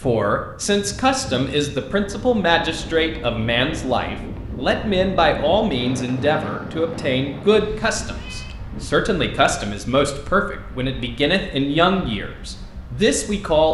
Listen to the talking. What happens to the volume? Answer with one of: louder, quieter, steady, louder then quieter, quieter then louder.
steady.